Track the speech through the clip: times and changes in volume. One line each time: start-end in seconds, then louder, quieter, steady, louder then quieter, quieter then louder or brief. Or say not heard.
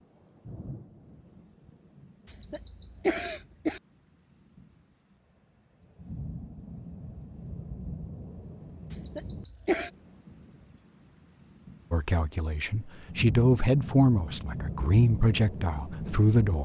11.9-16.5 louder then quieter.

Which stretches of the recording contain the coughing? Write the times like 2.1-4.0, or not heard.
2.2-3.8, 8.9-9.9.